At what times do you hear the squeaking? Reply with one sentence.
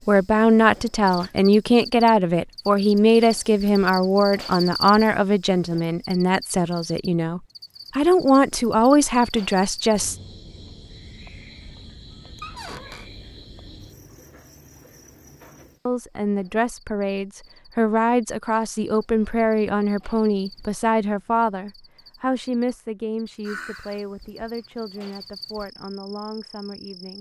The squeaking can be heard from 12.4 to 13.1 s.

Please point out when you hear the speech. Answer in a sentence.
The speech can be heard from 0.1 to 10.2 s and from 15.8 to 27.1 s.